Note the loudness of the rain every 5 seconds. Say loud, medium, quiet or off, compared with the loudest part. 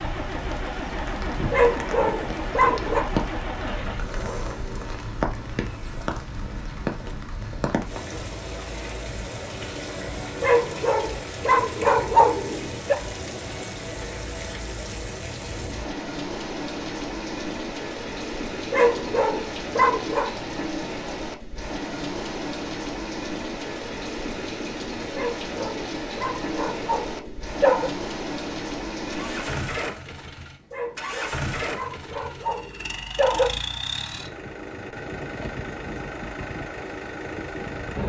loud, loud, loud, loud, loud, loud, off, off.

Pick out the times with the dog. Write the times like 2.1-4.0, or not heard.
1.5-3.0, 10.4-12.9, 18.7-20.3, 25.1-27.9, 30.7-33.5.